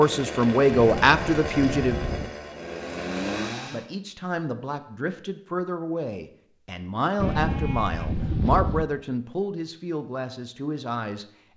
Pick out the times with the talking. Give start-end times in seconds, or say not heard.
0.0-2.3, 3.7-11.2.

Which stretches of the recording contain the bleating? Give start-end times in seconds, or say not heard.
0.8-2.3, 7.2-8.8.